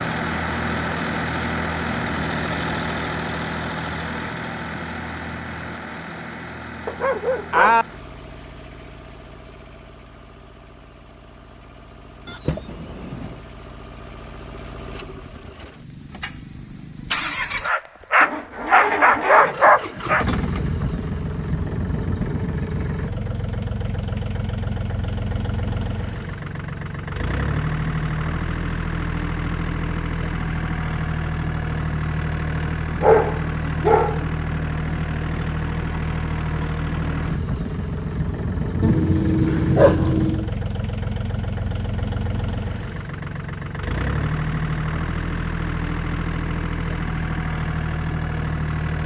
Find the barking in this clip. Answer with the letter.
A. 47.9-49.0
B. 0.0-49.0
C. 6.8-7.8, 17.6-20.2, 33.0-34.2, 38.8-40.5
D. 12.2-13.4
C.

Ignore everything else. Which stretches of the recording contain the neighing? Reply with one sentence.
You can hear the neighing from 12.2 to 13.4 s.